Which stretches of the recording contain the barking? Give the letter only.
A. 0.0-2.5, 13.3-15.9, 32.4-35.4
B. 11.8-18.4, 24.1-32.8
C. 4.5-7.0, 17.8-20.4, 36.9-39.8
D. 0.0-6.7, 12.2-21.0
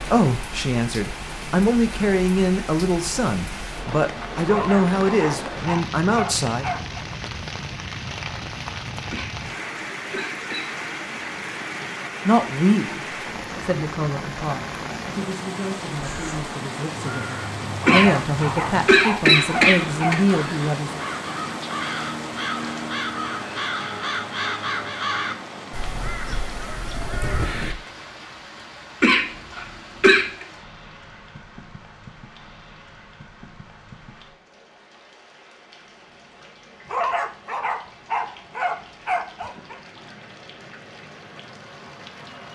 C.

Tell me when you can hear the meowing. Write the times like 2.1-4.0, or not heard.
not heard.